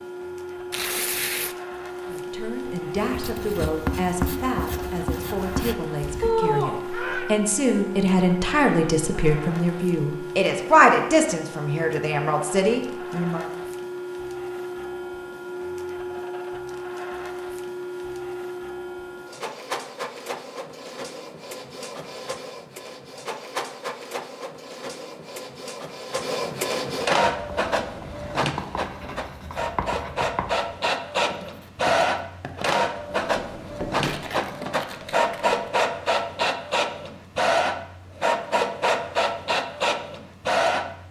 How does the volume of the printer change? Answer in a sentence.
The volume of the printer goes up.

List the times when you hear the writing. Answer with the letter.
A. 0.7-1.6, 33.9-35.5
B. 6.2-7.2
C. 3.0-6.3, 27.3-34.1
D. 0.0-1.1
C.